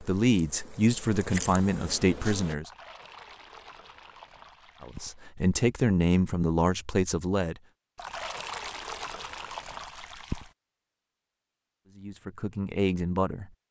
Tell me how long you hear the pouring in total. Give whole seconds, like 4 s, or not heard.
5 s.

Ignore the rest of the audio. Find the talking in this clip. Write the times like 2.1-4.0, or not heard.
0.0-2.7, 4.8-7.5, 11.9-13.5.